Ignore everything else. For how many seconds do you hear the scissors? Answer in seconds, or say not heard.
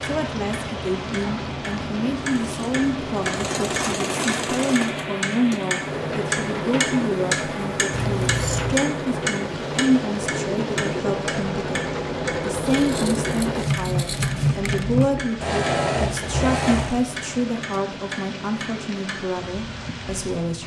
3 s.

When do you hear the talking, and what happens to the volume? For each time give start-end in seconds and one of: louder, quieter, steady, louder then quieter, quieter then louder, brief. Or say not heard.
0.0-20.6 steady.